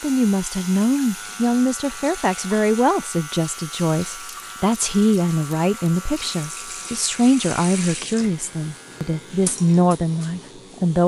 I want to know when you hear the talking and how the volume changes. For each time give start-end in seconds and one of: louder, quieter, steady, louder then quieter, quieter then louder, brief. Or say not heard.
0.0-11.0 steady.